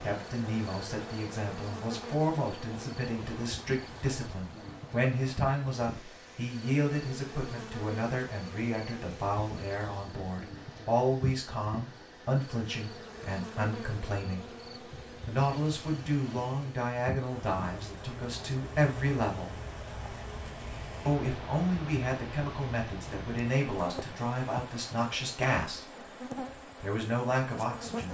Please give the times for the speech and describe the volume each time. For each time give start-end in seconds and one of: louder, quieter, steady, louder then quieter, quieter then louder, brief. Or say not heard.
0.0-14.4 steady
15.2-19.6 quieter then louder
21.1-28.0 steady.